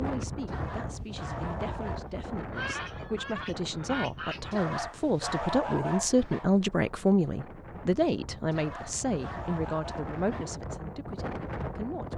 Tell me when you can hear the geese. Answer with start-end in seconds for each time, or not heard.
2.5-4.5.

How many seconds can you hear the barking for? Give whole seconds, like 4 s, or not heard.
6 s.